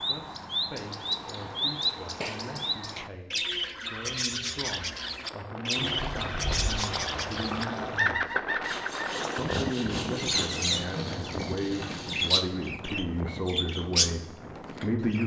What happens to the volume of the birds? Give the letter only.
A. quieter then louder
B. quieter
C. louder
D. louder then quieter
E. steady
E.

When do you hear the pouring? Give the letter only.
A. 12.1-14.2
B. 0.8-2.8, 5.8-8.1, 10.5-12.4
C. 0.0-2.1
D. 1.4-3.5
B.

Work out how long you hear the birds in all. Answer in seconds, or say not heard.
15 s.